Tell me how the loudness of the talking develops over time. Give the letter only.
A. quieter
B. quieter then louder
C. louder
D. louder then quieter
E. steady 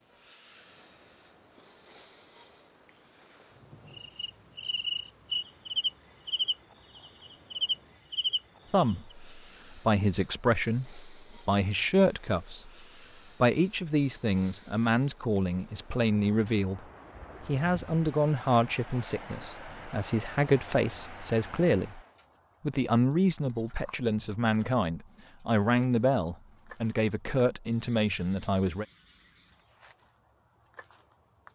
E.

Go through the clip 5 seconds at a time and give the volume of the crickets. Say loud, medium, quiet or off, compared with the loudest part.
loud, loud, loud, quiet, quiet, quiet, quiet.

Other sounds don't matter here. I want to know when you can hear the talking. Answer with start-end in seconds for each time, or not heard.
8.7-16.9, 17.4-22.0, 22.6-28.9.